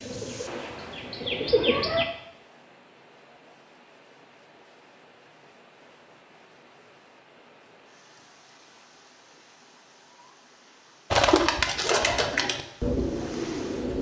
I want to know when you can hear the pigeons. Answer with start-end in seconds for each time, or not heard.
0.0-2.0, 11.1-13.9.